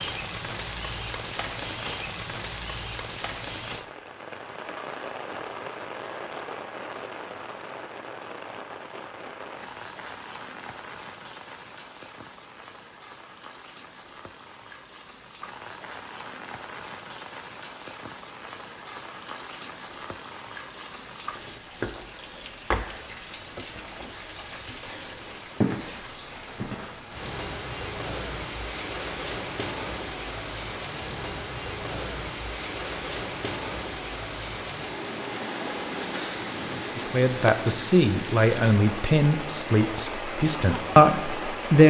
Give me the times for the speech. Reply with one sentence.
The speech can be heard from 37.0 to 41.8 s.